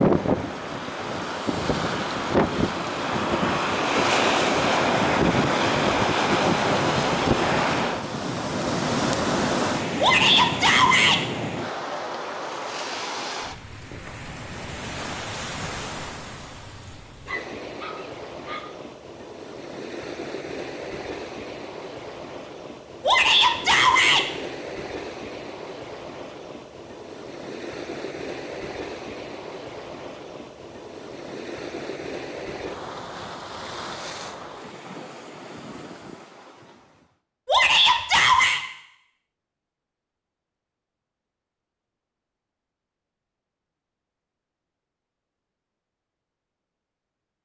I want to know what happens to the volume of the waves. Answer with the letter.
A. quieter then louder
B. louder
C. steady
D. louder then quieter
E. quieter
E.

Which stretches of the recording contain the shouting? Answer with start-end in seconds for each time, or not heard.
10.0-11.2, 23.1-24.2, 37.5-38.6.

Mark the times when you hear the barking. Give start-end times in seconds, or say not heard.
17.2-18.8.